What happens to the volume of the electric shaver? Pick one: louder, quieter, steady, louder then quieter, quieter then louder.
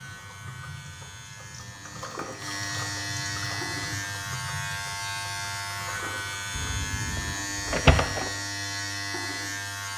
louder.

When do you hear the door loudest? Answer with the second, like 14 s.
8 s.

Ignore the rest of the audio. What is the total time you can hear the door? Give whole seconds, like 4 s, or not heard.
2 s.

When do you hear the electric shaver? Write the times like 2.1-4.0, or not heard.
0.0-9.9.